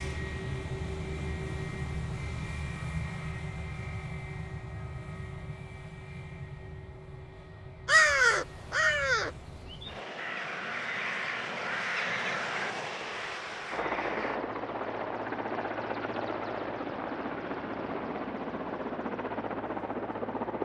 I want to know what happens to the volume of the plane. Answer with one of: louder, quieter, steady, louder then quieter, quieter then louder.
quieter then louder.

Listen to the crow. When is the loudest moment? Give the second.
8 s.